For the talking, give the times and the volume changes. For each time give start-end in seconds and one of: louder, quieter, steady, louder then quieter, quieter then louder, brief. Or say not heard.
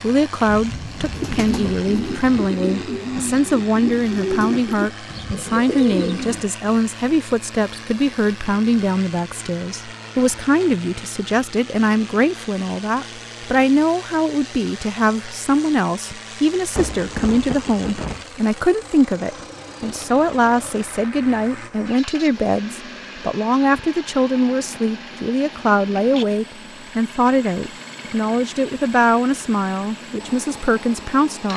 0.0-31.5 steady.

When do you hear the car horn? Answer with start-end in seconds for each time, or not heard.
not heard.